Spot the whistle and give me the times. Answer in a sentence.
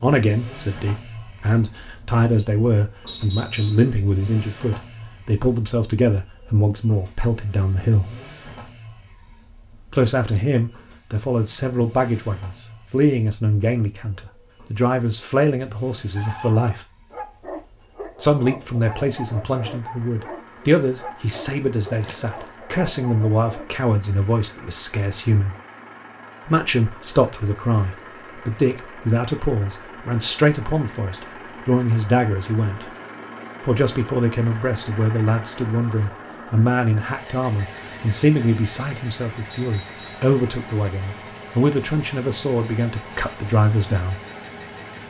The whistle can be heard from 3.0 to 3.9 s and from 39.5 to 40.1 s.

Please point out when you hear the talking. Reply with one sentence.
You can hear the talking from 0.0 to 8.2 s, from 9.9 to 16.8 s, from 18.2 to 25.6 s, from 26.4 to 32.9 s and from 33.6 to 44.2 s.